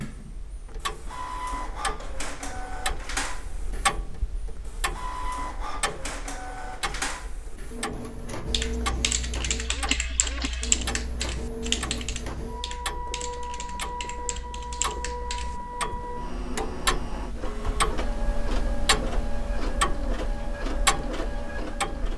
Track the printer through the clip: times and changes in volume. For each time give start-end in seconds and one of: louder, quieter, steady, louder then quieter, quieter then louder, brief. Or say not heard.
0.0-22.1 steady.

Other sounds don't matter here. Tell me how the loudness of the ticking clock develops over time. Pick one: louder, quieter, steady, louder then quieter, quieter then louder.
quieter then louder.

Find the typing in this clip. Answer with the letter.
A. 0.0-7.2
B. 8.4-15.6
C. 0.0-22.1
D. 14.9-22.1
B.